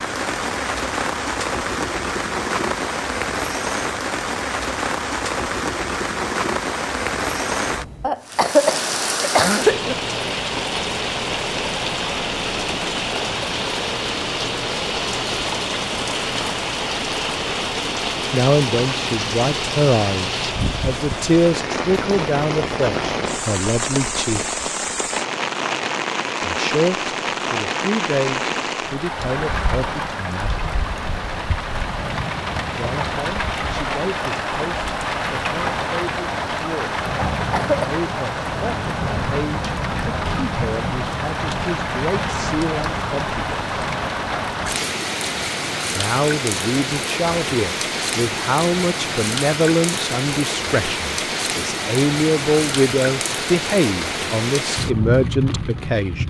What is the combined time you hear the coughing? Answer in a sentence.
You can hear the coughing for 3 seconds altogether.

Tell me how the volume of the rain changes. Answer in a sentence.
The volume of the rain stays about the same.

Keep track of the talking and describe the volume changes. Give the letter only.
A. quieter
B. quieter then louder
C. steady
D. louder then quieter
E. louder
B.